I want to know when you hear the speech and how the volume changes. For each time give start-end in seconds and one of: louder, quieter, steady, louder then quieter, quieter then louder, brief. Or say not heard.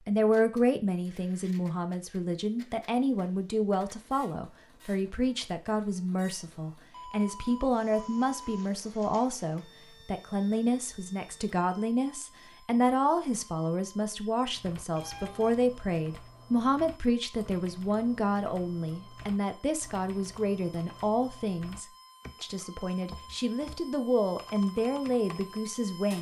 0.1-26.1 steady.